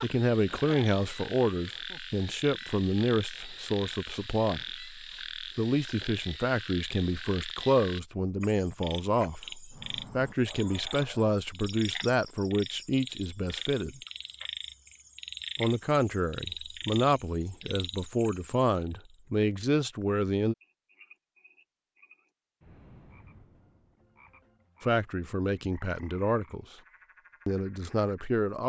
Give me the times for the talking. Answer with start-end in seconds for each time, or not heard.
0.0-14.0, 15.6-20.6, 24.8-26.8, 27.4-28.6.